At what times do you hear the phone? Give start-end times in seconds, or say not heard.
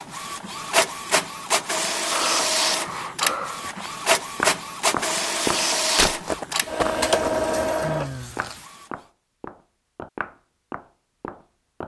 not heard.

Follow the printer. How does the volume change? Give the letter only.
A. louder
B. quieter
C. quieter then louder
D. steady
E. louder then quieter
D.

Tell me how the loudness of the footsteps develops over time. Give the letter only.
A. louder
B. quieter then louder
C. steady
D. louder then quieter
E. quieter
E.